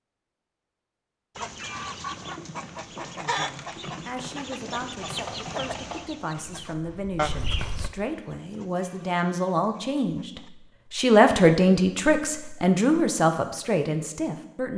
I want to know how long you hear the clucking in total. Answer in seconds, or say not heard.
9 s.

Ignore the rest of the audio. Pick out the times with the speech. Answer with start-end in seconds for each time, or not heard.
3.2-14.7.